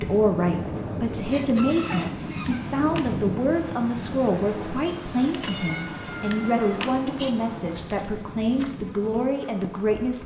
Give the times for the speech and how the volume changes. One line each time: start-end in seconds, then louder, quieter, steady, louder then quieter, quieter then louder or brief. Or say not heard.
0.0-10.2 steady.